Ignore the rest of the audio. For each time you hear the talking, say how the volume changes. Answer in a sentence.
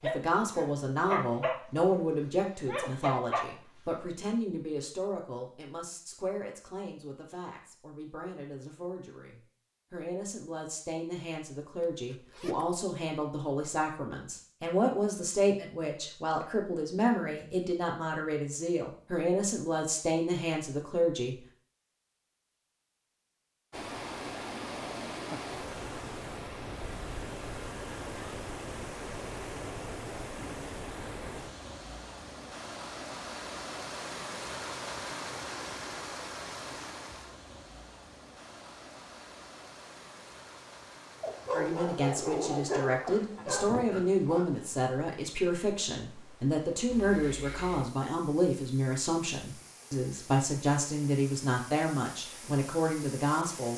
You can hear the talking from 0.0 to 21.4 s, getting quieter then louder; and from 41.5 to 53.7 s, at a steady volume.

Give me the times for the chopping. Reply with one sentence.
You can't hear the chopping here.